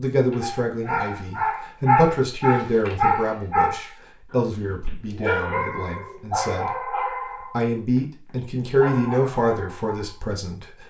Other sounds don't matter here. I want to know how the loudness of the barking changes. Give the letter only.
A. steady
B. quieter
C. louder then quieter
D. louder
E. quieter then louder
B.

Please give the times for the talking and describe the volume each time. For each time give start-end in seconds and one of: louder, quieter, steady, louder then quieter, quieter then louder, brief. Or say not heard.
0.0-10.8 quieter then louder.